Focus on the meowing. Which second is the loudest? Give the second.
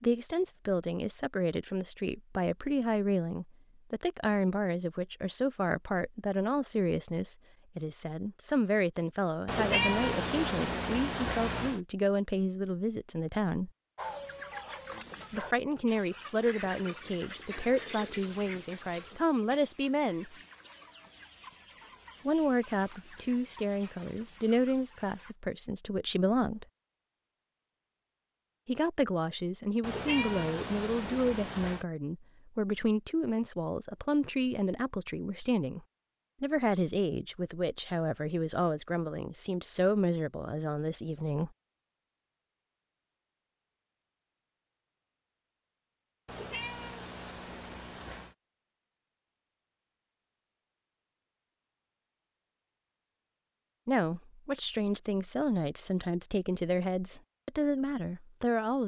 10 s.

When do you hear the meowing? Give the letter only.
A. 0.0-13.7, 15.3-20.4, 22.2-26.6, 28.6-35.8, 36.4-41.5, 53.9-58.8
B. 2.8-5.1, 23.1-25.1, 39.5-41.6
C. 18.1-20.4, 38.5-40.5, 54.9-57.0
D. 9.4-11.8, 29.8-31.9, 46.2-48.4
D.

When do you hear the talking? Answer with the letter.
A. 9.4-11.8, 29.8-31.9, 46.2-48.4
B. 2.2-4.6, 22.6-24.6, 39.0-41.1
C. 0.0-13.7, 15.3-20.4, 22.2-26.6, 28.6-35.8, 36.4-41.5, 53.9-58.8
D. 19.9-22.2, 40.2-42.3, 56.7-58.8
C.